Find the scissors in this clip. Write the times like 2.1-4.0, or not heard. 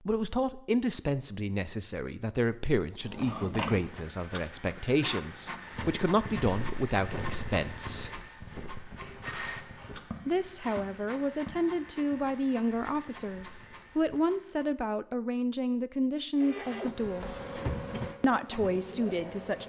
8.9-10.0.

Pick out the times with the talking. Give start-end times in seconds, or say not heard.
0.1-8.2, 10.2-17.3, 18.2-19.6.